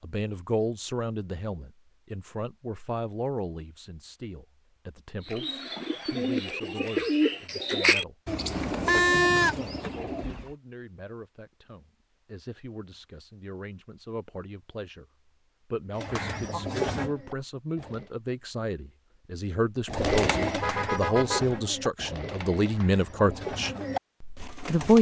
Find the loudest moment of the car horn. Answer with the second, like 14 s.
9 s.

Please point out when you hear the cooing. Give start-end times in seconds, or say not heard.
5.2-10.6, 15.9-18.1, 19.9-24.9.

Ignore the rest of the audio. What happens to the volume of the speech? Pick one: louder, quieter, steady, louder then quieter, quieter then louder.
quieter then louder.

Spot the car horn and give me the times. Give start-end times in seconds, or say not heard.
8.6-9.8, 20.5-21.6.